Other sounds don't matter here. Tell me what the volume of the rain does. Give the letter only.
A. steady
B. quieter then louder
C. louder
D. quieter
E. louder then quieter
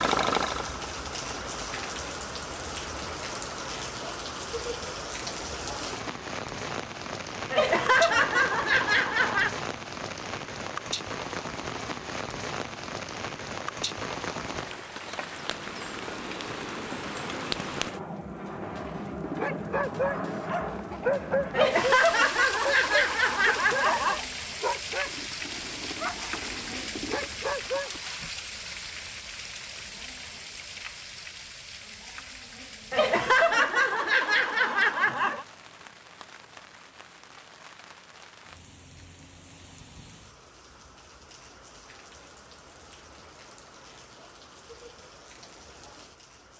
D.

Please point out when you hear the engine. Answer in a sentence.
You can hear the engine from 0.0 to 2.0 s.